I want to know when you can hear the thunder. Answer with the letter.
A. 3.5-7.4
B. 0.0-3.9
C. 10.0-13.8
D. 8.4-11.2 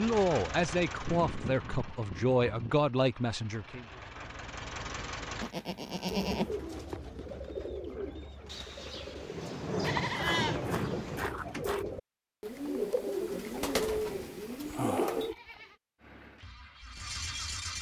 D.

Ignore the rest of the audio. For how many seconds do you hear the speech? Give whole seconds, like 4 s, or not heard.
4 s.